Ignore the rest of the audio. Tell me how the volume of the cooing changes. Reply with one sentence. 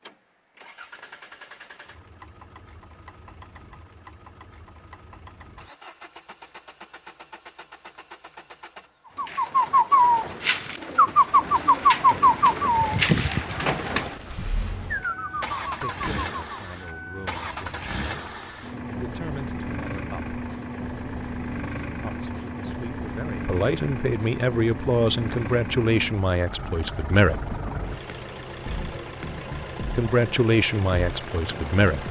The loudness of the cooing goes down.